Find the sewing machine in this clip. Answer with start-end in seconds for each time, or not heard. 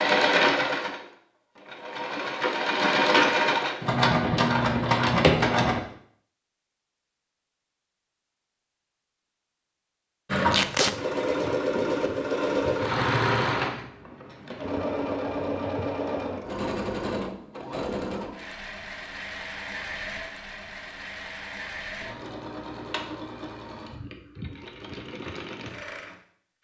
0.0-5.8, 10.2-26.5.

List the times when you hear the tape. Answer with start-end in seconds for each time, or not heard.
10.5-10.9.